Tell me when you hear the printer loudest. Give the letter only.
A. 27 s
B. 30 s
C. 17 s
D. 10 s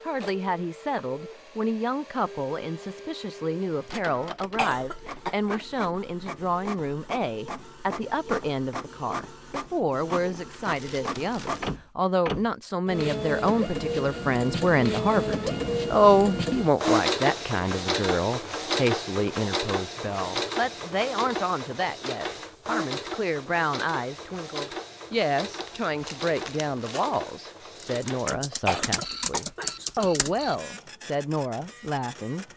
C.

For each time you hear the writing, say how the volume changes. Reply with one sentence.
You can't hear the writing here.